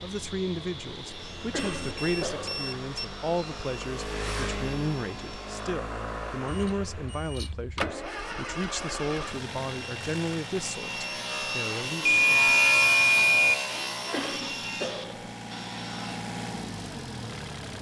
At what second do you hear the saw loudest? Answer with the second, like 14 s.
13 s.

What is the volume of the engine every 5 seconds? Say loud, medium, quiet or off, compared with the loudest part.
loud, loud, medium, loud.